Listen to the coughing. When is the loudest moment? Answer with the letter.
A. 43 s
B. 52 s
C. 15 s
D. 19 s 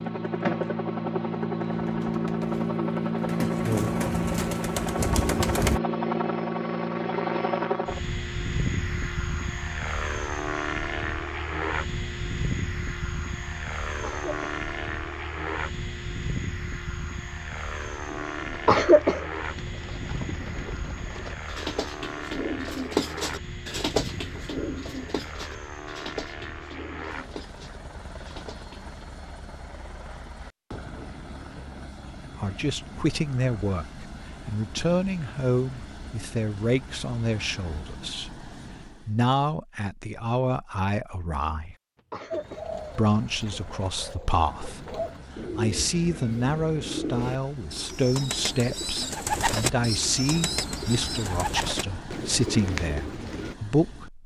D.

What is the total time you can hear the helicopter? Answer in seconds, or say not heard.
51 s.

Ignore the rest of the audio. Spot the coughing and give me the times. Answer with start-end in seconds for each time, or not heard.
14.0-14.5, 18.6-19.2, 42.1-42.6.